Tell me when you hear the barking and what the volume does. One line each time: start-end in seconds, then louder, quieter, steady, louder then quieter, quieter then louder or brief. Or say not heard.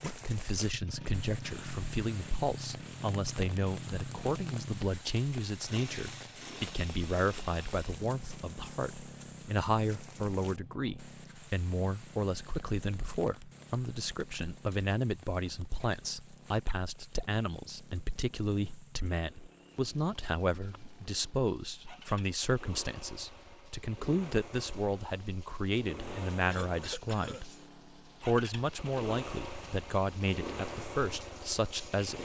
not heard.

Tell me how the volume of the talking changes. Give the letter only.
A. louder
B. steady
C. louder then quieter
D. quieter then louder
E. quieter
B.